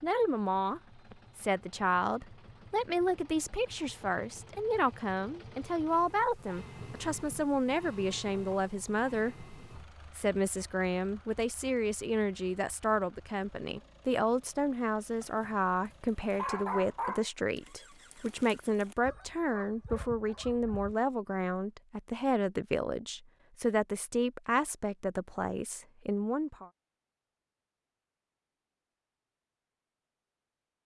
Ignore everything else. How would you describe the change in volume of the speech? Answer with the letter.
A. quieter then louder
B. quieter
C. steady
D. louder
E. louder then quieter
C.